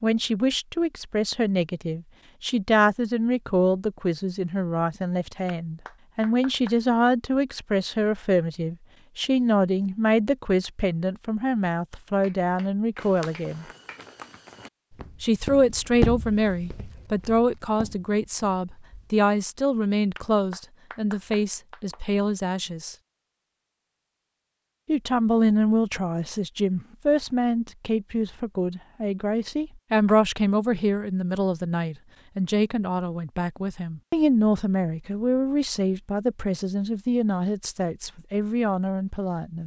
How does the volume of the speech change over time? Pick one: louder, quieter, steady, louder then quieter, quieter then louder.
steady.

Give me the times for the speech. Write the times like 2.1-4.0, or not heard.
0.0-13.7, 15.2-22.9, 24.9-39.6.